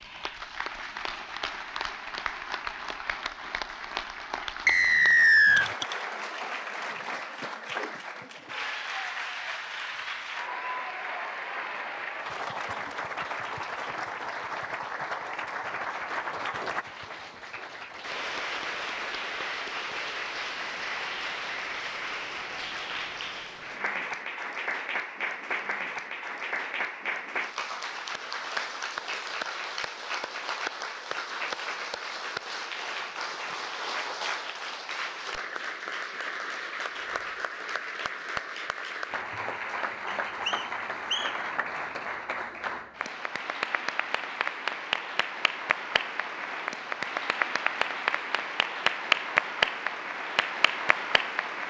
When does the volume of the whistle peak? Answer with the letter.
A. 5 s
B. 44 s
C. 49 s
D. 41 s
A.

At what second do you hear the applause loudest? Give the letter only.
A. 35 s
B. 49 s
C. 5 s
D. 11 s
B.